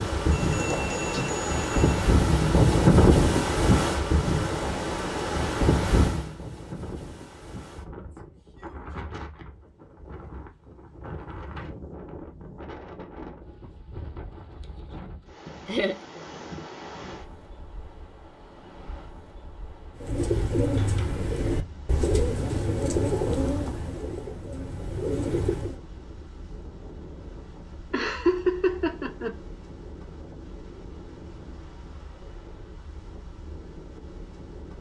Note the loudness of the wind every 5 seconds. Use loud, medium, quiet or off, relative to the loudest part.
loud, medium, quiet, quiet, quiet, quiet, quiet.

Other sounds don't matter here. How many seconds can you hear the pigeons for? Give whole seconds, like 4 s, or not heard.
6 s.